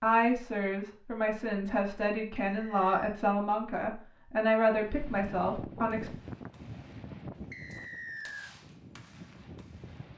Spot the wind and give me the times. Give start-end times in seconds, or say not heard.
4.7-10.1.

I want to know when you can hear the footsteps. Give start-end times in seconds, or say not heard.
not heard.